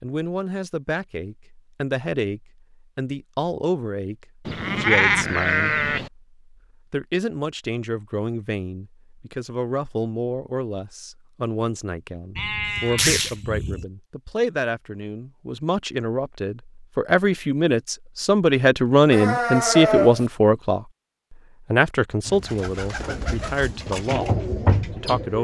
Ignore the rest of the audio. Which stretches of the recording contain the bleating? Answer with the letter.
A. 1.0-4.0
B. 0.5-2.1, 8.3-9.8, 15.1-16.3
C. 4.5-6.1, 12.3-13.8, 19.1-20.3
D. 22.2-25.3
C.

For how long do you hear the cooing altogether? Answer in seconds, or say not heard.
3 s.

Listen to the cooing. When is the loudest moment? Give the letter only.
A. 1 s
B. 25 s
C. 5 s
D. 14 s
B.